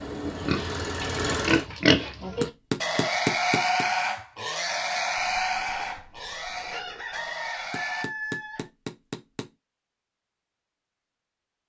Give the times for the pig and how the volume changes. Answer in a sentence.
The pig can be heard from 0.3 to 8.1 s, getting quieter.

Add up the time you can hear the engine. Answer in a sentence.
The engine can be heard for 2 seconds in total.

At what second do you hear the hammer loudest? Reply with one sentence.
The loudest moment of the hammer is at 3 seconds.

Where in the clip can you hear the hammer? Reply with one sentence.
The hammer can be heard from 2.4 to 3.9 s and from 7.7 to 9.5 s.